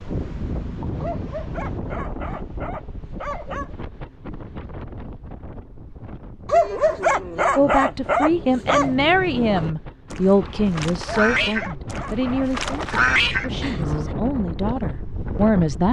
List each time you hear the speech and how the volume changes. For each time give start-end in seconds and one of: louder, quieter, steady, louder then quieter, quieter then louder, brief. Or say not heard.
7.5-15.8 quieter.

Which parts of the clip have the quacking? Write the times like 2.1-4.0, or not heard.
8.7-14.1.